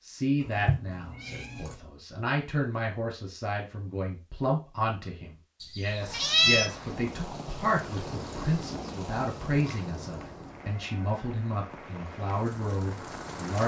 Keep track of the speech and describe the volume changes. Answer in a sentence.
The loudness of the speech stays about the same.